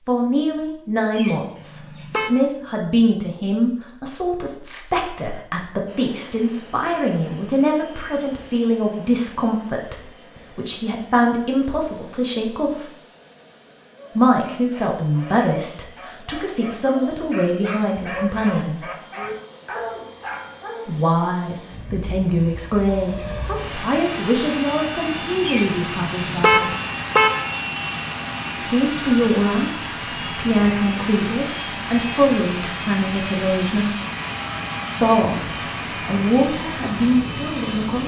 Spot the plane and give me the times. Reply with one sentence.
The plane can be heard from 5.8 to 38.0 s.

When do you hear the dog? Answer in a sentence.
The dog can be heard from 13.9 to 20.9 s.